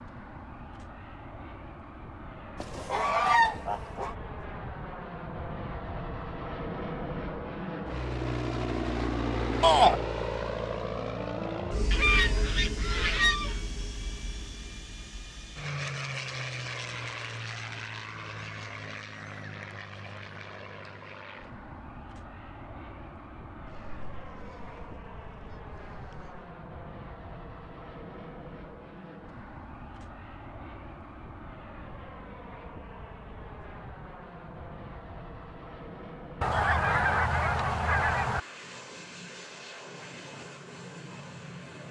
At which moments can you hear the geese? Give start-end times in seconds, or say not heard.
2.6-4.2, 11.9-13.6, 23.6-26.4, 36.4-38.4.